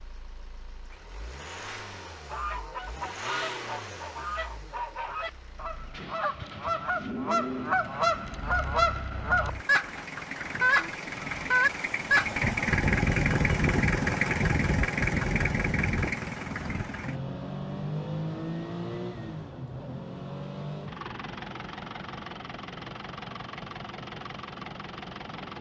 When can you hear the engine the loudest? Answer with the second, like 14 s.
13 s.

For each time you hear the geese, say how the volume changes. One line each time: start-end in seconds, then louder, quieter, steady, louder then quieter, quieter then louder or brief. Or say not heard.
2.2-12.3 louder.